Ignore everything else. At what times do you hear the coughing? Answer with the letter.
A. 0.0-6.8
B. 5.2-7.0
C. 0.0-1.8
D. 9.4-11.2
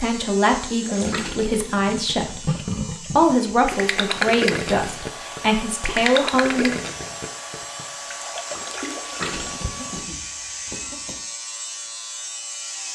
D.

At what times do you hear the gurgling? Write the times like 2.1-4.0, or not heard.
0.8-9.9.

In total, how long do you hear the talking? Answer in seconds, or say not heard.
7 s.